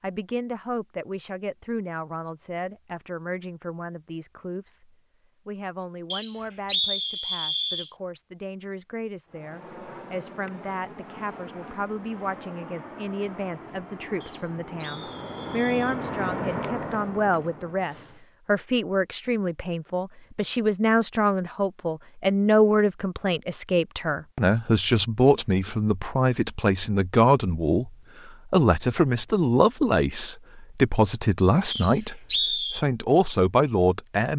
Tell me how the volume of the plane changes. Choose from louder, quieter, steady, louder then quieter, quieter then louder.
louder.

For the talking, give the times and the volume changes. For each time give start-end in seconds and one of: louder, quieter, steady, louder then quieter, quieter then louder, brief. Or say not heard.
0.0-34.3 louder.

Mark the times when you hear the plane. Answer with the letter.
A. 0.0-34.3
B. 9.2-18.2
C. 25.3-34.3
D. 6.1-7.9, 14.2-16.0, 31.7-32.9
B.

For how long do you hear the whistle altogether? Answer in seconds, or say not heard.
5 s.